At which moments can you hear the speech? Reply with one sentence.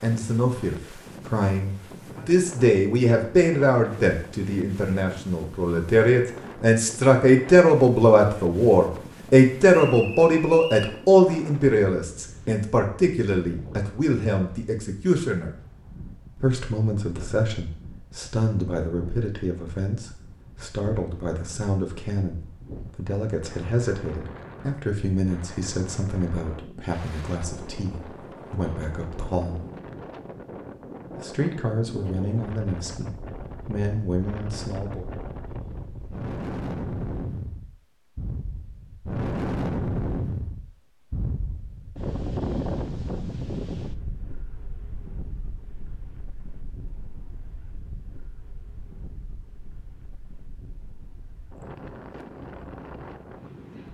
The speech can be heard from 0.0 to 15.6 s, from 16.4 to 29.6 s and from 31.1 to 35.1 s.